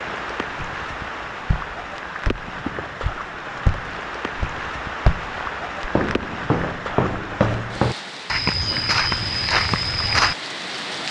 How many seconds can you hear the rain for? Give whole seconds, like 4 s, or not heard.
11 s.